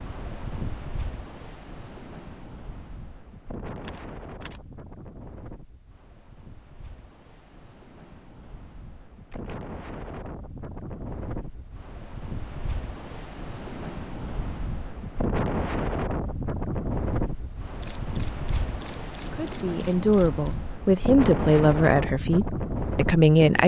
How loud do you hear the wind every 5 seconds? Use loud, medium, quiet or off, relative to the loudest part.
medium, quiet, medium, loud, loud.